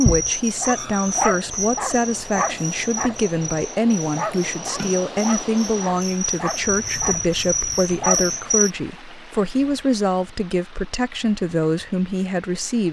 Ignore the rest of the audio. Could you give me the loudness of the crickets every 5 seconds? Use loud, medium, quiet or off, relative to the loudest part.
loud, loud, off.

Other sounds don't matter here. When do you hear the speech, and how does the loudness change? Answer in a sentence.
You can hear the speech from 0.0 to 12.8 s, at a steady volume.